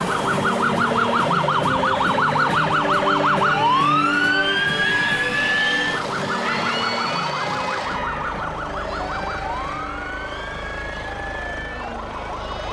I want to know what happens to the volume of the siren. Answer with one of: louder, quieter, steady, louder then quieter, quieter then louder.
quieter.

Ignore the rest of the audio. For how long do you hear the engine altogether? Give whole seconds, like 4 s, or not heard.
7 s.